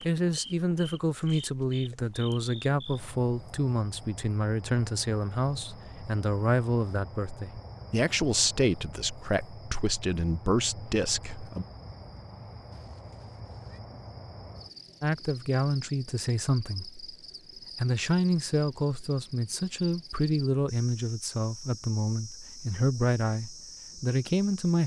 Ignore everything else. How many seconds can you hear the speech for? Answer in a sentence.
The speech can be heard for 21 seconds in total.